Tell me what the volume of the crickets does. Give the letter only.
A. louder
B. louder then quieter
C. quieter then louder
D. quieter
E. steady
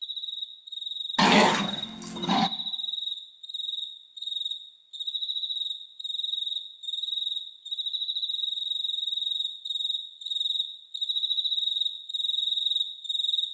A.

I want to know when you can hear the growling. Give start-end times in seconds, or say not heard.
1.1-2.5.